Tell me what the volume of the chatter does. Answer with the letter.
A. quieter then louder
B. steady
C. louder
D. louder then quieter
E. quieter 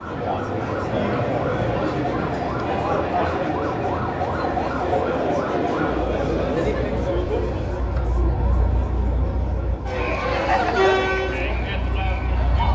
A.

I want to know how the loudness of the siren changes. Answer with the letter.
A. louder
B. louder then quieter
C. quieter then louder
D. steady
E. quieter
E.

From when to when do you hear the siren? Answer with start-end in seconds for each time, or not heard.
0.0-12.7.